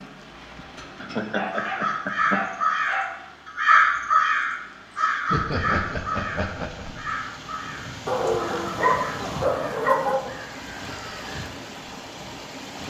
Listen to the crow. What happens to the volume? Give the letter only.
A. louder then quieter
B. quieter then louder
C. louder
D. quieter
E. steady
D.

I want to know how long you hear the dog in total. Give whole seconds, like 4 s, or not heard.
4 s.